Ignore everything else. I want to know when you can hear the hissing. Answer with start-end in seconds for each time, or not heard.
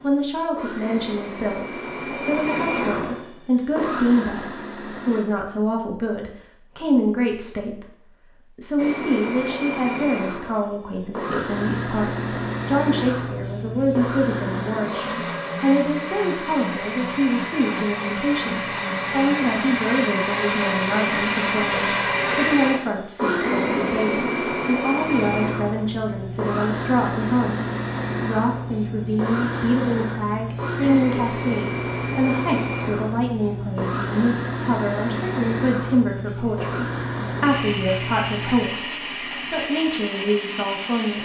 11.4-14.8, 25.0-38.8.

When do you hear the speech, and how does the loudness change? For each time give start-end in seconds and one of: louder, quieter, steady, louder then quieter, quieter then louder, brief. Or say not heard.
0.0-41.2 steady.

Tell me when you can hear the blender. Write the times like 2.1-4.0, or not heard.
0.0-5.2, 8.8-41.2.